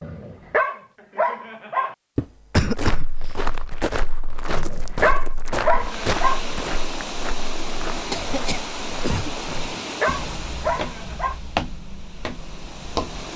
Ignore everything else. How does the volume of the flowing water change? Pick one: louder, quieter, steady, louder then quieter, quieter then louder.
quieter.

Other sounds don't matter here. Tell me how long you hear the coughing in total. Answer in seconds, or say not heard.
3 s.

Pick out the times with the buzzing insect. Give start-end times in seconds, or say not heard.
not heard.